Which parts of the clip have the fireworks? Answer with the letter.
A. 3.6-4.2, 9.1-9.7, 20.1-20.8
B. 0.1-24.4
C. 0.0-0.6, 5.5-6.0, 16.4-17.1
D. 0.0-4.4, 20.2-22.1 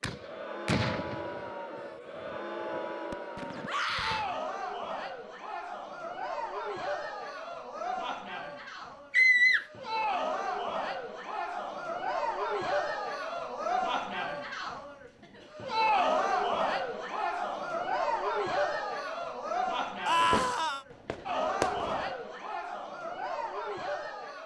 D.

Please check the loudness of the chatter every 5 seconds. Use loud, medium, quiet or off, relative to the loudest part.
medium, medium, loud, loud, medium.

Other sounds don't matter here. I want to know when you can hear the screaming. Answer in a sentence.
The screaming can be heard from 3.6 to 4.2 s, from 9.1 to 9.7 s and from 20.1 to 20.8 s.